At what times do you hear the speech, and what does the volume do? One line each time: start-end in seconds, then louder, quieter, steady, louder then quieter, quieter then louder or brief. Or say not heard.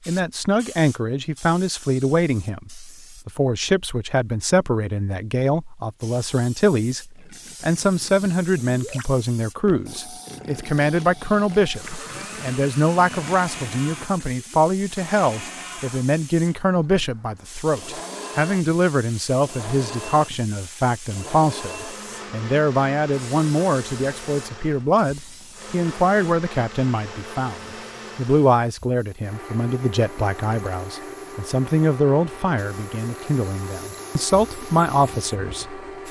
0.1-35.8 steady.